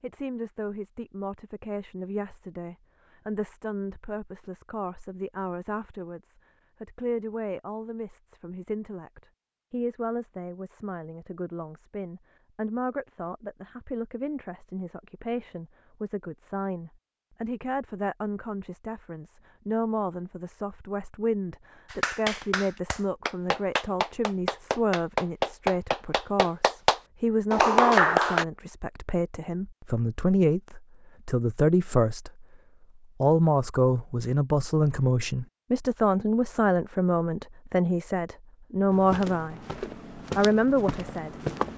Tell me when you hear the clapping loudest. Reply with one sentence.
The volume of the clapping peaks at 28 seconds.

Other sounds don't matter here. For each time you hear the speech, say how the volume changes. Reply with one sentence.
You can hear the speech from 0.0 to 32.5 s, getting louder; and from 33.2 to 41.4 s, at a steady volume.